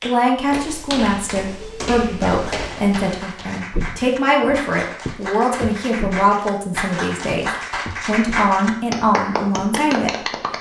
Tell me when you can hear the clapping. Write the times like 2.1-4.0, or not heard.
0.0-10.5.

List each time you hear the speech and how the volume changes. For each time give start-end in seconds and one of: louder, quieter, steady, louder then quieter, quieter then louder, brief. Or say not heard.
0.0-10.3 steady.